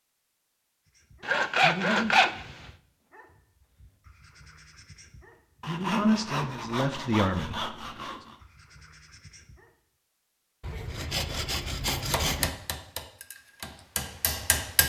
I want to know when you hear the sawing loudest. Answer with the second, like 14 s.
2 s.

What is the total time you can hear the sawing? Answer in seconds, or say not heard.
6 s.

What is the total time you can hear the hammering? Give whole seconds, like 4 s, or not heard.
3 s.